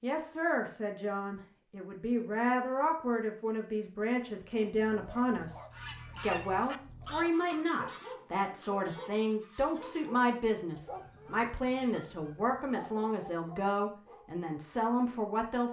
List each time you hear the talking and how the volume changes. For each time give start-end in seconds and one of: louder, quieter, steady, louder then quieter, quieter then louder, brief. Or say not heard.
0.0-15.6 steady.